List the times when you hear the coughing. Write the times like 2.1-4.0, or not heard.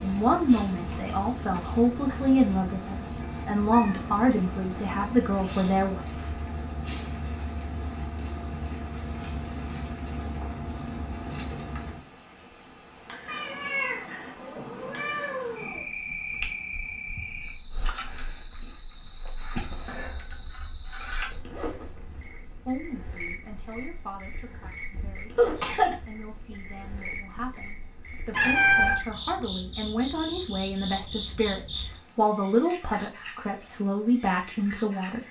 25.4-25.9.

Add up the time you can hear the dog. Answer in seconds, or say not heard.
not heard.